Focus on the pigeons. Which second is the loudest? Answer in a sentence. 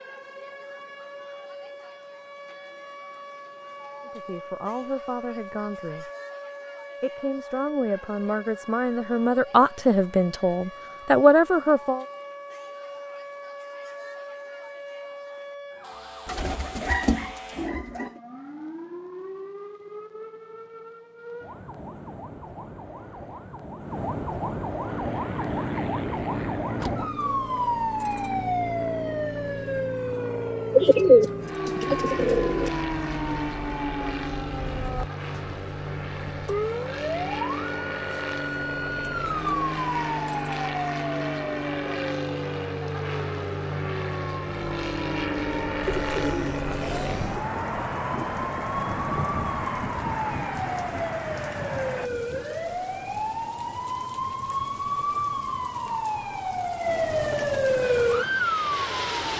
The volume of the pigeons peaks at 31 seconds.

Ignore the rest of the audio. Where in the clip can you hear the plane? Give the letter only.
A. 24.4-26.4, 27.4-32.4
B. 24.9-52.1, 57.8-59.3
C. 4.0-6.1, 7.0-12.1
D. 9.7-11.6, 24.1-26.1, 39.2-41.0
B.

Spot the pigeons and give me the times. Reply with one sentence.
You can hear the pigeons from 16.2 to 18.1 s, from 30.7 to 32.7 s and from 45.8 to 47.5 s.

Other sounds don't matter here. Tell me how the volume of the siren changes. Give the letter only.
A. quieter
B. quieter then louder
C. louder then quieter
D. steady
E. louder
E.